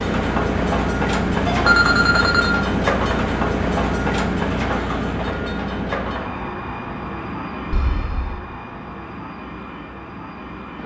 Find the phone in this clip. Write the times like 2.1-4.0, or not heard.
1.2-2.5, 7.7-8.4.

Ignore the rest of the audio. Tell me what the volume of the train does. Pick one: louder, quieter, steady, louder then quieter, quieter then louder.
quieter.